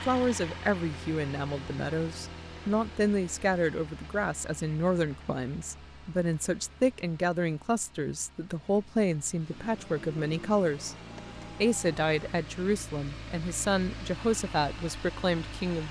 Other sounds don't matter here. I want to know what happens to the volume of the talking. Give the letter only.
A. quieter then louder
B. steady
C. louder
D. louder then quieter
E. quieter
B.